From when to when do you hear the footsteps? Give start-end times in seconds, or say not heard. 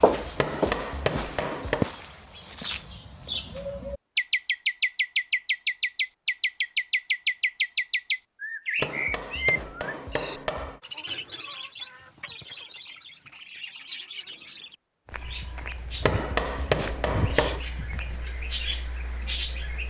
0.0-3.8, 15.1-18.2.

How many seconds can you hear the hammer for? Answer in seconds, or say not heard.
5 s.